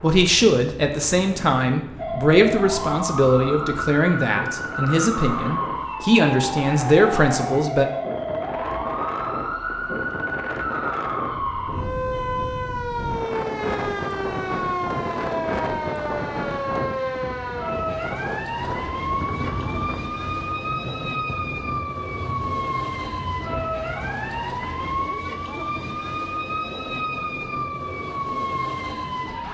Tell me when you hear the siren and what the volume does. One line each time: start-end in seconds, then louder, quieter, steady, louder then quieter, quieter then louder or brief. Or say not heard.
1.9-29.5 steady.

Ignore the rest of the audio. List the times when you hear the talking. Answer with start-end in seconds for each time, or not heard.
0.0-7.8.